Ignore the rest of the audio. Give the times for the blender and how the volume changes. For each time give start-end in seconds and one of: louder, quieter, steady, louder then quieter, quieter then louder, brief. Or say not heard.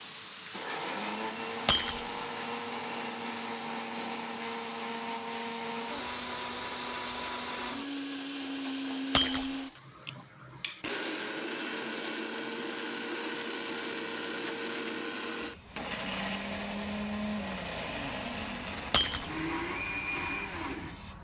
0.0-21.0 steady.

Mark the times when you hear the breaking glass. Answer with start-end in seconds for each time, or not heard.
1.6-2.1, 9.2-9.7, 18.9-19.4.